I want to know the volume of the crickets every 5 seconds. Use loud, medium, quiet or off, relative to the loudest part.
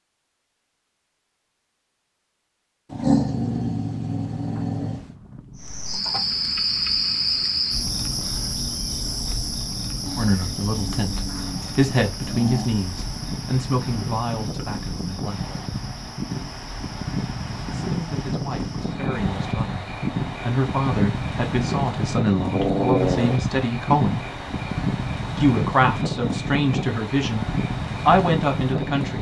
off, loud, medium, quiet, quiet, quiet.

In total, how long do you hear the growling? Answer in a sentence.
You can hear the growling for 6 seconds altogether.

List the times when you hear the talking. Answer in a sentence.
You can hear the talking from 10.2 to 15.4 s, from 17.9 to 24.2 s and from 25.4 to 29.1 s.